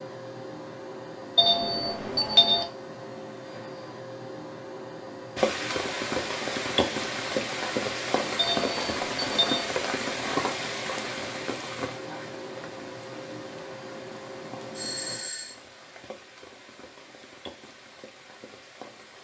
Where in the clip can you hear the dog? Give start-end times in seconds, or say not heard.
not heard.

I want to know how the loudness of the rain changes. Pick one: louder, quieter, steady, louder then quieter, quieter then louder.
quieter.